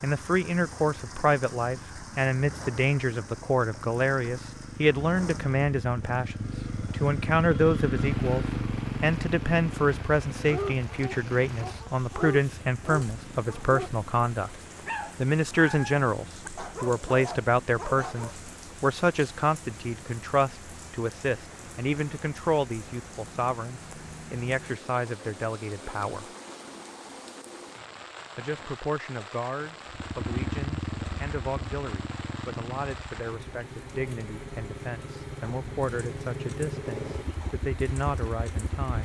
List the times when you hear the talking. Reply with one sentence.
The talking can be heard from 0.0 to 14.5 s, from 15.2 to 26.3 s and from 28.4 to 39.0 s.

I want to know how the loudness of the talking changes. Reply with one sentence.
The loudness of the talking goes down.